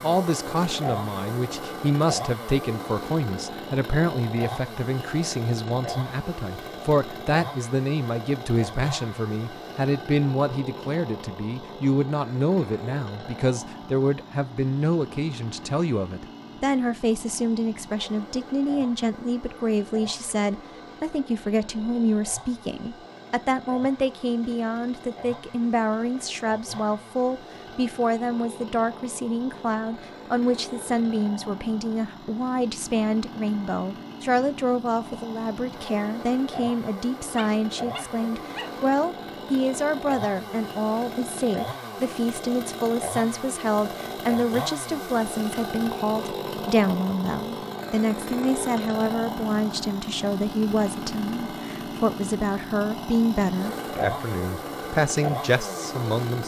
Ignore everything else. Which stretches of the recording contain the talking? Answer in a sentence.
The talking can be heard from 0.0 to 56.4 s.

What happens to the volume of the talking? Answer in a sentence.
The volume of the talking stays about the same.